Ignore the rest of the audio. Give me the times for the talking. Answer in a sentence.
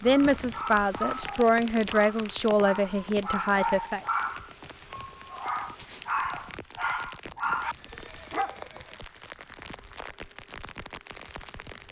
You can hear the talking from 0.0 to 4.0 s.